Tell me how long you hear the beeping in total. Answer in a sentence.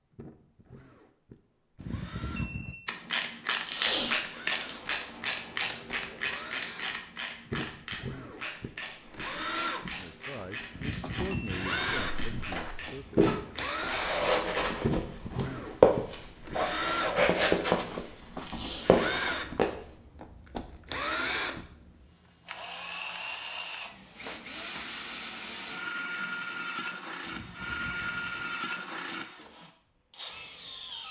You can hear the beeping for 4 seconds altogether.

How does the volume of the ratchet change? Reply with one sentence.
The volume of the ratchet goes down.